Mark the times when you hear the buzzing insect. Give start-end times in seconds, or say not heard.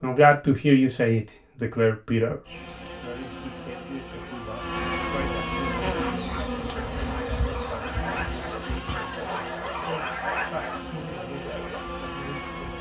2.5-12.7.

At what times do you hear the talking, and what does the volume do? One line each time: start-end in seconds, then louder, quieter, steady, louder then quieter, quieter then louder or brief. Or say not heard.
0.0-2.4 brief
3.0-12.7 steady.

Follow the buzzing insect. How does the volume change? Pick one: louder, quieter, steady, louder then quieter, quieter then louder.
louder then quieter.